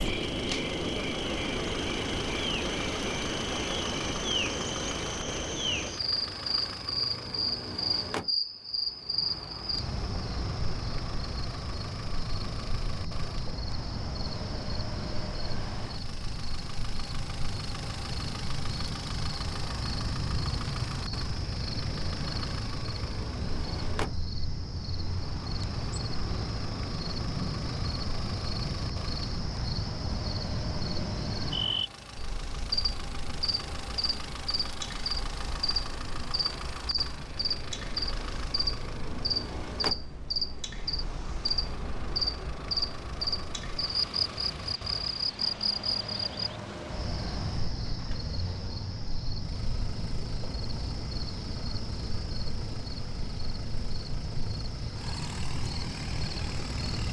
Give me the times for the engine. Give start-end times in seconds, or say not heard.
0.0-57.0.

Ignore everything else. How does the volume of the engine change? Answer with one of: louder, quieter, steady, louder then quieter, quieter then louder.
steady.